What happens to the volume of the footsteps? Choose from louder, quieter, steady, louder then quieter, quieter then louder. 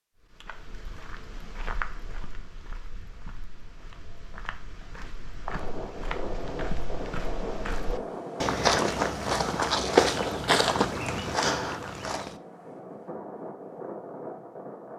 quieter then louder.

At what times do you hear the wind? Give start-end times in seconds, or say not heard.
5.5-14.9.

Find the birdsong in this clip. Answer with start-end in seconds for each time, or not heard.
not heard.